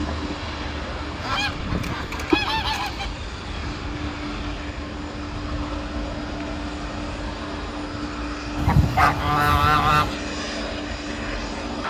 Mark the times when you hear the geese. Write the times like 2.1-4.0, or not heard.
1.1-3.1, 8.6-10.2.